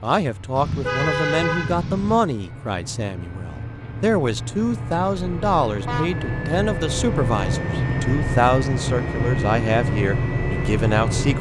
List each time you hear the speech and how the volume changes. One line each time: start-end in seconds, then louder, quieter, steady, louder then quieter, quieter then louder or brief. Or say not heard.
0.0-11.3 steady.